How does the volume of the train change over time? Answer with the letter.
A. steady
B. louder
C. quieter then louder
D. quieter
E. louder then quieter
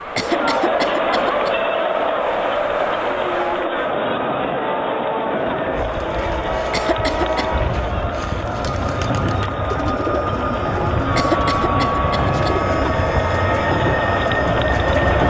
B.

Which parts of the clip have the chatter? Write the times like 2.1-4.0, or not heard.
0.0-15.2.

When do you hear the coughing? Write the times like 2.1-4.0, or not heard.
0.1-1.5, 6.7-7.5, 11.2-12.6.